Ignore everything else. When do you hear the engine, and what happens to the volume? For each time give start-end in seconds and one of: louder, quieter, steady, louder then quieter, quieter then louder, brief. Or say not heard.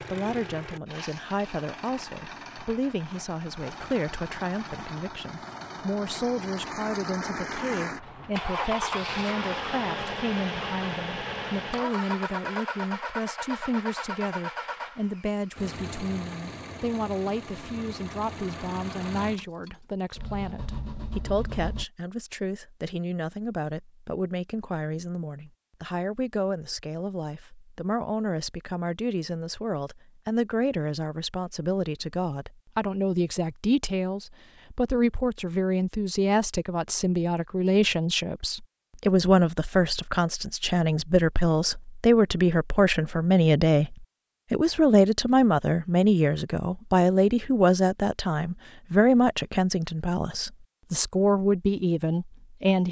0.0-21.9 louder then quieter.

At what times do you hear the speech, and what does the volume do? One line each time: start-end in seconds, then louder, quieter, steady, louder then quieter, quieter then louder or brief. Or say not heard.
0.0-52.8 louder.